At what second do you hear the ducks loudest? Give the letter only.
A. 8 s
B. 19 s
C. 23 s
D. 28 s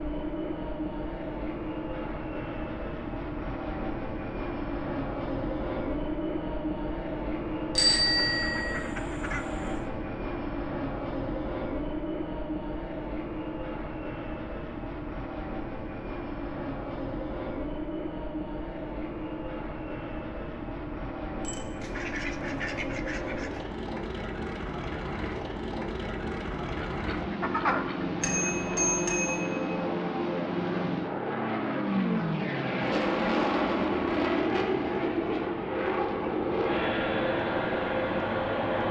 D.